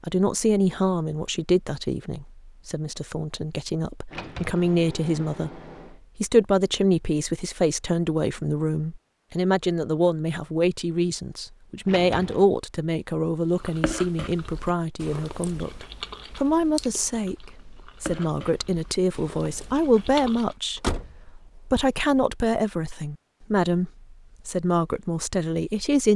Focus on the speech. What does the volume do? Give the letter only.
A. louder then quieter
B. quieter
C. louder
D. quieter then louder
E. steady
E.